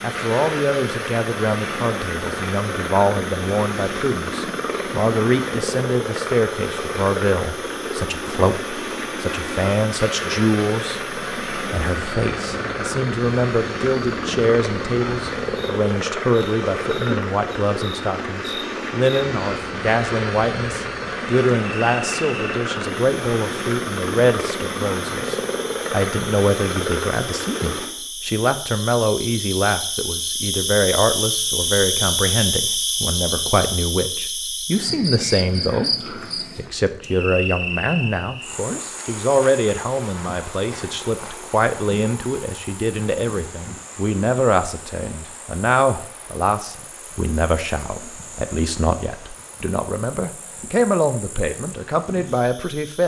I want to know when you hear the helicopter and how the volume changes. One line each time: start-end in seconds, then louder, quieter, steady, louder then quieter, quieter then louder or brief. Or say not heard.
0.0-27.9 steady.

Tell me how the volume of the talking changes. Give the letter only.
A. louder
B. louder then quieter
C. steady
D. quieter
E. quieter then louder
C.